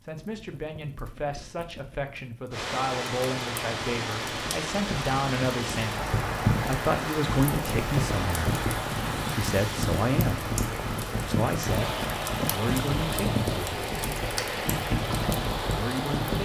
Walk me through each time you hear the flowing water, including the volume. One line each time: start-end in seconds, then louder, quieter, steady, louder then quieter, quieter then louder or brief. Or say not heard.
2.5-16.4 steady.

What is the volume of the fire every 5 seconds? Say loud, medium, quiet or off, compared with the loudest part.
quiet, loud, loud, loud.